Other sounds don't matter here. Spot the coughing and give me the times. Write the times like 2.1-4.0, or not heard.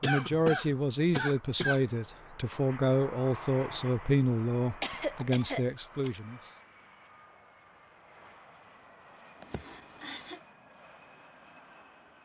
0.0-1.8, 4.8-6.1, 9.4-10.4.